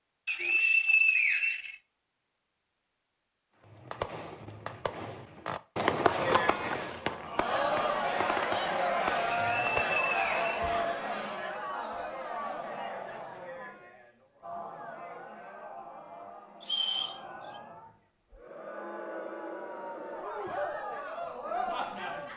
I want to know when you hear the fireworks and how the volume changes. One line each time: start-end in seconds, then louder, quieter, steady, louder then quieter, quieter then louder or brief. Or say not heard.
3.6-10.2 louder then quieter.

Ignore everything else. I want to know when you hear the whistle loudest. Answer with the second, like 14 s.
1 s.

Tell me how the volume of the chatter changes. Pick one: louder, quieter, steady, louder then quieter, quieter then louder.
quieter then louder.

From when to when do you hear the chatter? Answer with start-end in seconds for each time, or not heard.
6.0-22.3.